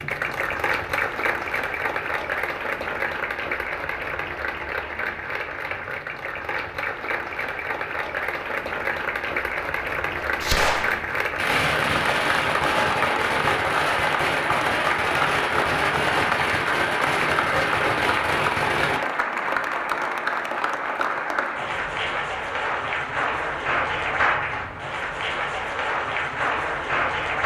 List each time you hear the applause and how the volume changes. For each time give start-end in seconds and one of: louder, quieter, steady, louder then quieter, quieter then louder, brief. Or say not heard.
0.0-27.4 steady.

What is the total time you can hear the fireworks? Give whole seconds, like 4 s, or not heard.
9 s.